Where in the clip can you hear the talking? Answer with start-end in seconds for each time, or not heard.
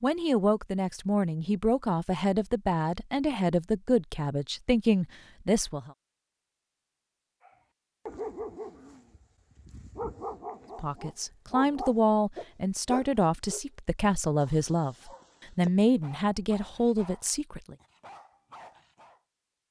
0.0-5.9, 10.8-17.8.